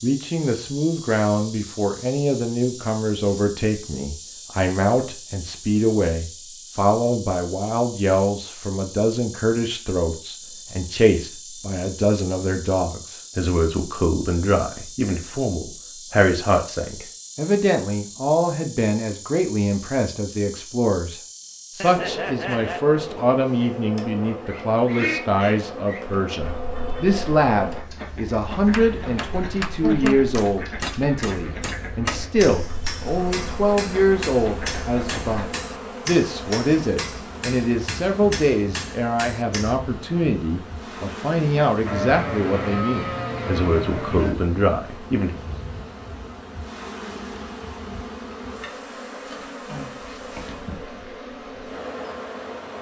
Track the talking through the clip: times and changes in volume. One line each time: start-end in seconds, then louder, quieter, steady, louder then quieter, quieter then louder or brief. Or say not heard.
0.0-45.4 steady.